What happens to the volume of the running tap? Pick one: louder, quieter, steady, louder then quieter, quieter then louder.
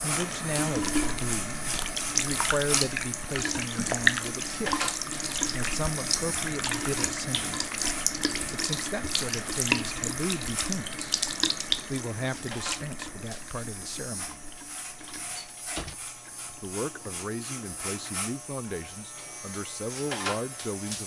quieter.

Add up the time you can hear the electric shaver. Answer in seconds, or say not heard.
21 s.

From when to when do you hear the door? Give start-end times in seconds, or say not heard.
15.0-15.9.